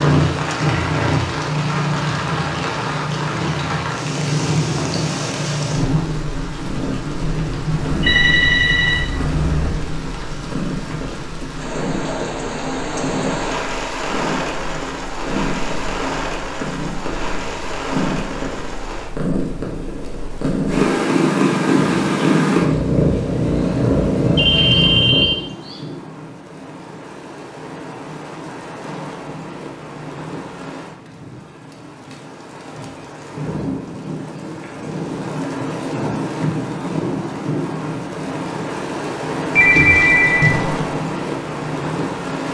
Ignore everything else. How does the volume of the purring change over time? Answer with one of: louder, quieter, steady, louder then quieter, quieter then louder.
quieter then louder.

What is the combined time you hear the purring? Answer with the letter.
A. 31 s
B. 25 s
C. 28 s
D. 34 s
B.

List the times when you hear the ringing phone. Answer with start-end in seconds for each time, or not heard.
7.7-9.7, 24.4-25.8, 39.5-40.9.